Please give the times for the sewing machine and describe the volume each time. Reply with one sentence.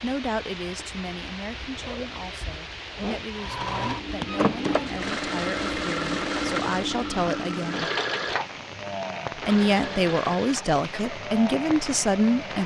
The sewing machine can be heard from 3.3 to 12.6 s, getting quieter.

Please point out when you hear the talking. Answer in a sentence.
You can hear the talking from 0.0 to 7.9 s and from 9.4 to 12.6 s.